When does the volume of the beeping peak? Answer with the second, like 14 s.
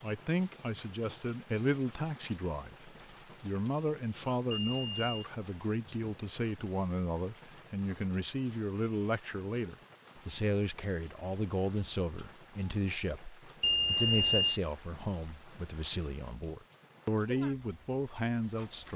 14 s.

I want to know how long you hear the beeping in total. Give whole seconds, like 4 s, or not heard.
2 s.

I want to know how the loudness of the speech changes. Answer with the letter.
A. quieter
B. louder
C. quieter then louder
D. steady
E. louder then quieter
D.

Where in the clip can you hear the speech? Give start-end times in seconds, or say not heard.
0.0-18.9.